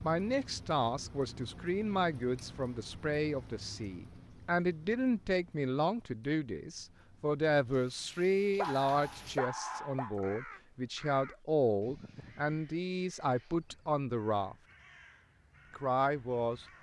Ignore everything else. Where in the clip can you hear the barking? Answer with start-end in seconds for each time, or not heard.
8.6-10.2.